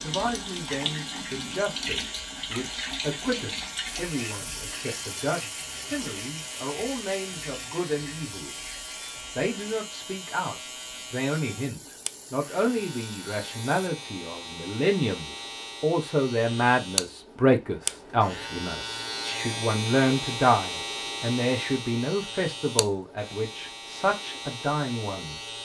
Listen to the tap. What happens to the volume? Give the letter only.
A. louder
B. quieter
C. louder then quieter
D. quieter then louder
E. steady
B.